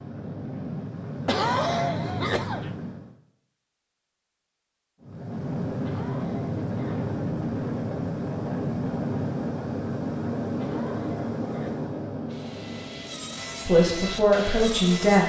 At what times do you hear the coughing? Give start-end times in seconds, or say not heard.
1.2-2.7, 5.8-7.1, 10.6-11.9.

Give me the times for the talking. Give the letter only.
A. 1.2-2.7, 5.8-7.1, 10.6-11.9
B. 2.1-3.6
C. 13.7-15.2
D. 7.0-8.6
C.